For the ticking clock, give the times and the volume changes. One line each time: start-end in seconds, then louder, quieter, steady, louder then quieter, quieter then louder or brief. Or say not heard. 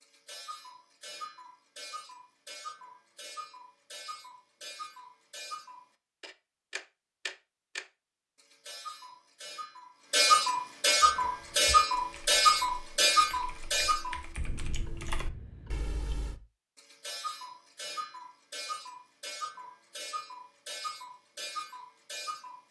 0.0-22.6 louder then quieter.